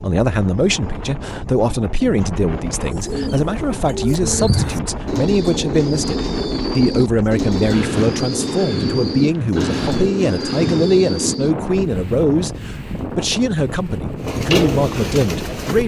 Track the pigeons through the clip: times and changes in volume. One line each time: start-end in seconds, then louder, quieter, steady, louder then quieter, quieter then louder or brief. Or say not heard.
2.8-11.6 steady
14.2-15.8 brief.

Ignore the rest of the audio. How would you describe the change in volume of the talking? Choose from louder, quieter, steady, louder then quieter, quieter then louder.
steady.